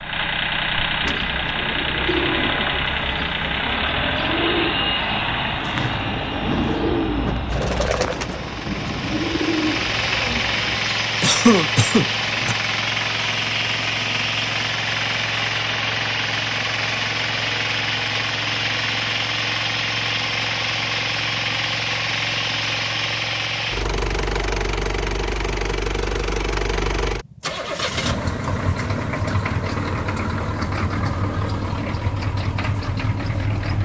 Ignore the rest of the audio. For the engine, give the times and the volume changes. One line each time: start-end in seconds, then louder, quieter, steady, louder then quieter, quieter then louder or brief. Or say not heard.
0.0-33.8 steady.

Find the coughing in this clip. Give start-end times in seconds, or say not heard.
11.0-12.6.